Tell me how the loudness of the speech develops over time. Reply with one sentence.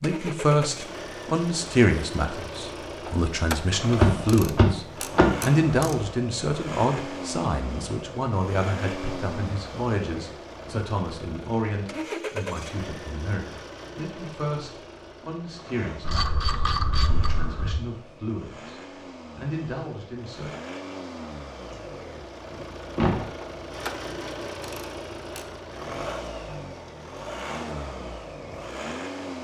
The volume of the speech goes down.